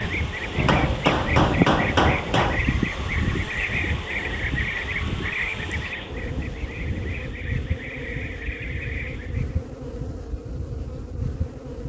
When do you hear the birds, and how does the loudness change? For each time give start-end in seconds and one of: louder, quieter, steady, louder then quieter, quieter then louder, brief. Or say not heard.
0.0-9.6 quieter.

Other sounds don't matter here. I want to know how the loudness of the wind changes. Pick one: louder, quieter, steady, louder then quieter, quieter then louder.
quieter.